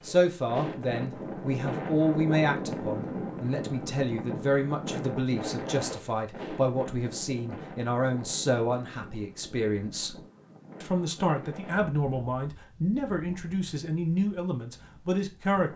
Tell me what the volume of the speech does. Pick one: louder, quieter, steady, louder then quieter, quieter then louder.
steady.